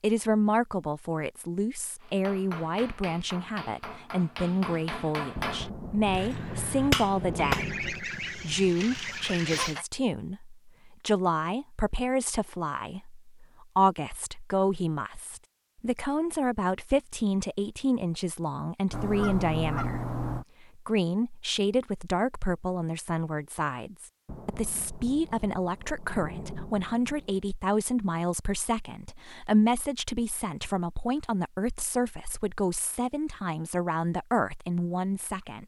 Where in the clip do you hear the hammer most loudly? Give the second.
7 s.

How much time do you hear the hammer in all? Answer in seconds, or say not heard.
6 s.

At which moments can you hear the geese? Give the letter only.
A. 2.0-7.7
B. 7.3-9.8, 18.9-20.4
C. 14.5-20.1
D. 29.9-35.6
B.